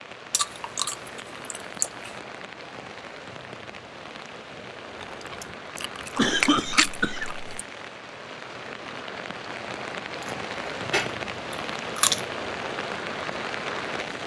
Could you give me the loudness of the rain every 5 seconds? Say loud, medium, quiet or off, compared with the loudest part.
medium, medium, loud.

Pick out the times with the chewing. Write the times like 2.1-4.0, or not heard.
0.3-2.1, 5.0-7.7, 10.2-12.2.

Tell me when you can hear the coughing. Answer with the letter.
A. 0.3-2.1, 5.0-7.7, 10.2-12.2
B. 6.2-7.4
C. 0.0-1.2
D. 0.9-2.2
B.